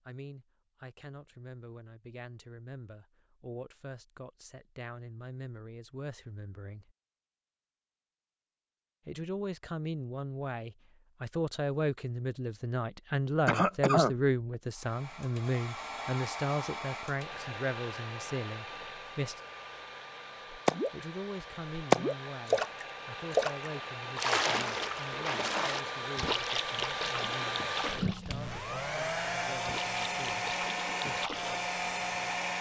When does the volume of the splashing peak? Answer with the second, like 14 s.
22 s.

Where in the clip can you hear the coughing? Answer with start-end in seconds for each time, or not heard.
13.4-14.2.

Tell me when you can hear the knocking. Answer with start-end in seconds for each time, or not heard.
not heard.